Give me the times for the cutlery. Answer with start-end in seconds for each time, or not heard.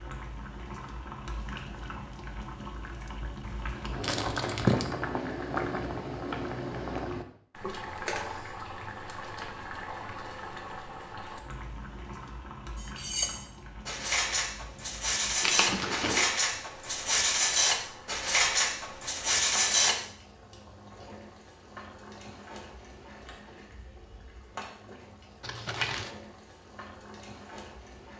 12.8-19.9.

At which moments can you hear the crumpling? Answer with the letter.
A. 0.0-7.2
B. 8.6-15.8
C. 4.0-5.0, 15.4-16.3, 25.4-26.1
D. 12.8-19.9
C.